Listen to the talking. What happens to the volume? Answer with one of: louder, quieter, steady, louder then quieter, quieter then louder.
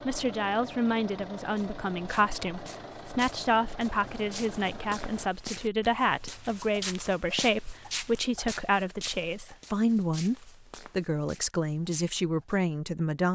steady.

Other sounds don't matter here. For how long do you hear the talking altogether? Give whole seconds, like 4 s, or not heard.
13 s.